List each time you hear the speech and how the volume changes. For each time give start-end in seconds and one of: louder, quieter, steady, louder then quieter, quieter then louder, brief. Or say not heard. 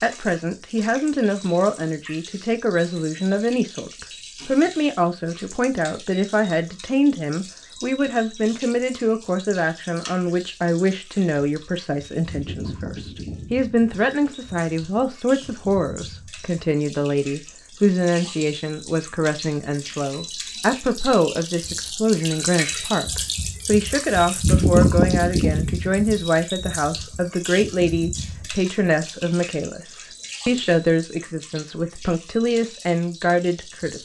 0.0-33.9 steady.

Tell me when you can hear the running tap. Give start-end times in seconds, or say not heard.
0.0-33.9.